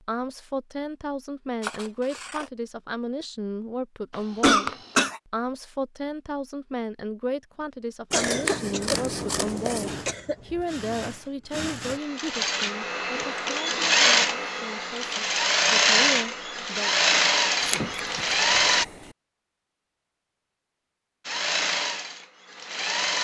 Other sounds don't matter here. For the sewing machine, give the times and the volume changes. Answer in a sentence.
You can hear the sewing machine from 9.8 to 18.9 s, getting louder; and briefly from 21.2 to 23.2 s.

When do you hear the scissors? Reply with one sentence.
You can hear the scissors from 1.6 to 2.5 s, from 8.1 to 10.1 s and from 17.6 to 19.1 s.